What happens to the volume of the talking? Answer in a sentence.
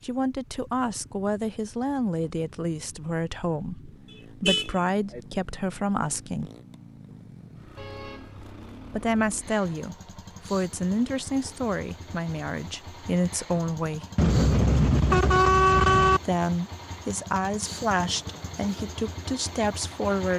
The volume of the talking stays about the same.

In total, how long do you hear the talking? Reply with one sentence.
The talking can be heard for 16 seconds in total.